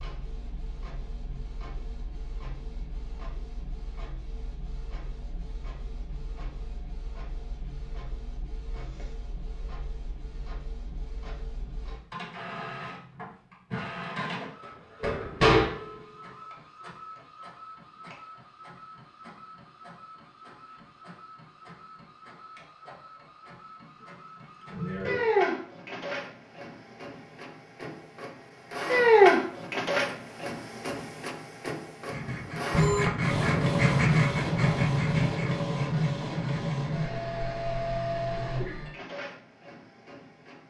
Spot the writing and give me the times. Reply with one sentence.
The writing can be heard from 32.0 to 37.1 s.